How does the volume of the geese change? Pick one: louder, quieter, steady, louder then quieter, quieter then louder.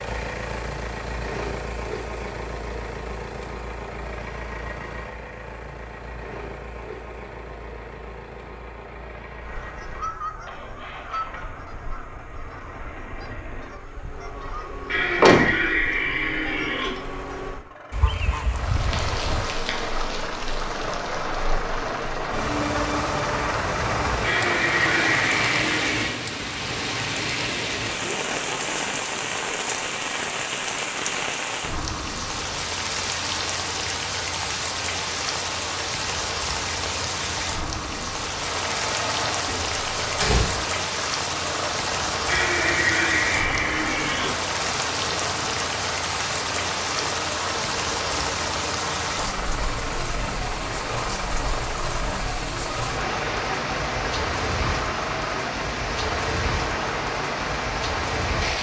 quieter then louder.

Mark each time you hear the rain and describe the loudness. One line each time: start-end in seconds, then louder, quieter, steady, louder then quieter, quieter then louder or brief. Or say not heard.
18.5-58.5 steady.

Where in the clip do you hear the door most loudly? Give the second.
15 s.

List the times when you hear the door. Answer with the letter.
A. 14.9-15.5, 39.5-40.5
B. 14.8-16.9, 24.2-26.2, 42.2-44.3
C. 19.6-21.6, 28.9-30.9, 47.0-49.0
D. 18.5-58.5
A.